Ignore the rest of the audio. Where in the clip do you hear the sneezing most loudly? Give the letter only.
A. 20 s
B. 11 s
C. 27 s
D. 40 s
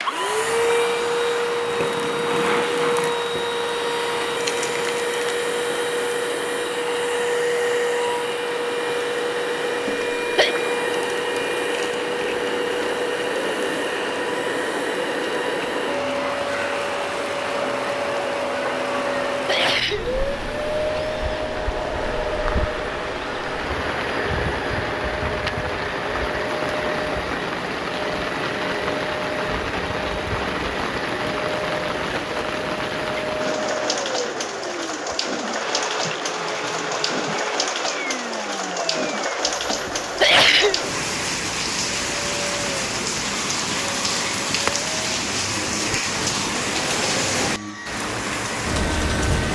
D.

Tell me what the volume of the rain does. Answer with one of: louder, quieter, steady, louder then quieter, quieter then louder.
louder.